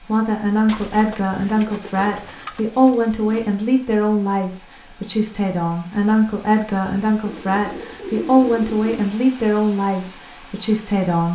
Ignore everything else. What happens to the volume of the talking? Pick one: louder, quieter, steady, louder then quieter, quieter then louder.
steady.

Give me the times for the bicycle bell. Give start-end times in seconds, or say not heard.
not heard.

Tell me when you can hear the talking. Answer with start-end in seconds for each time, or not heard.
0.0-11.3.